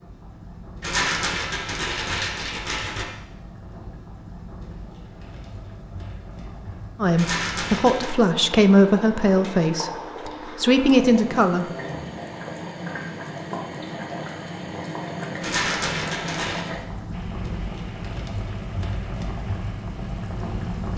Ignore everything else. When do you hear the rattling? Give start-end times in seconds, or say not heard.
0.8-3.0, 7.2-8.1, 15.4-16.6.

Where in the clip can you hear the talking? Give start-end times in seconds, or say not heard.
7.0-11.7.